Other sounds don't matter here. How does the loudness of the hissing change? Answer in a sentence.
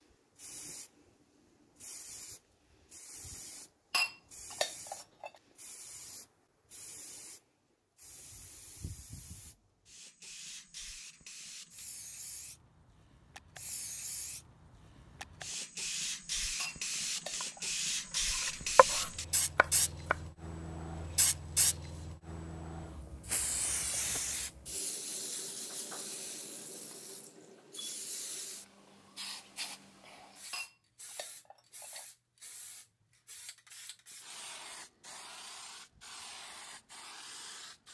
The loudness of the hissing goes up, then down.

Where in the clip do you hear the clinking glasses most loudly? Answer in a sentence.
The volume of the clinking glasses peaks at 4 seconds.